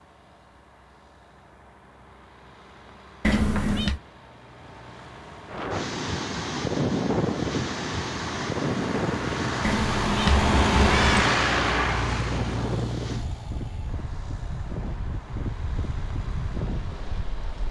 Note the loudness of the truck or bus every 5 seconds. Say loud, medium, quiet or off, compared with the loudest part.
quiet, medium, loud, quiet.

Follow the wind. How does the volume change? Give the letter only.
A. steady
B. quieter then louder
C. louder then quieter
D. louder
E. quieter
E.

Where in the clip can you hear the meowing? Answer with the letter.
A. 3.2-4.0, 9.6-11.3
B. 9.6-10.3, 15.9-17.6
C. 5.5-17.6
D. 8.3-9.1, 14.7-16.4
A.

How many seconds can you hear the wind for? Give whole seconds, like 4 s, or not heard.
12 s.